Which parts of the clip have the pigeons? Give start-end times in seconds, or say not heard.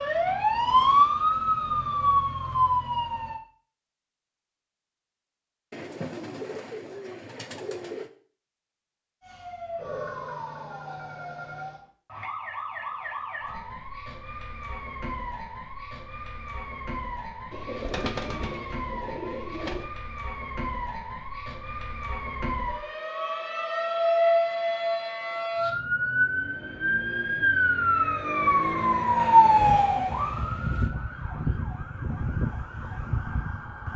5.7-8.1, 17.5-19.9.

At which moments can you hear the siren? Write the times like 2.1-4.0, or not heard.
0.0-3.4, 9.2-33.9.